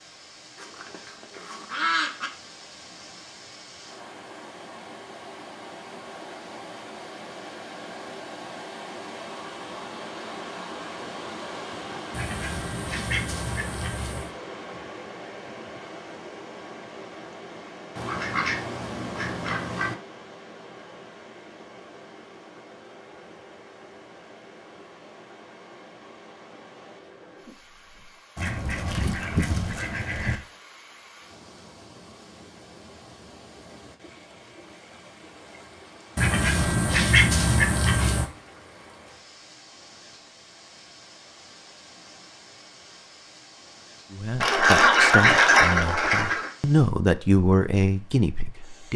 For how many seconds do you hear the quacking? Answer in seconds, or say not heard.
12 s.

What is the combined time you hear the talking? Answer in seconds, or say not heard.
5 s.